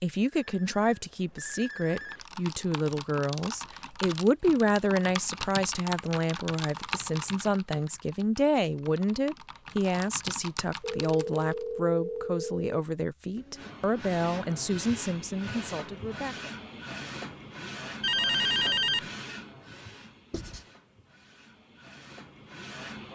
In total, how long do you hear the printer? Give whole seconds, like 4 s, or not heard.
10 s.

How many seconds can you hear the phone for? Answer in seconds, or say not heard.
5 s.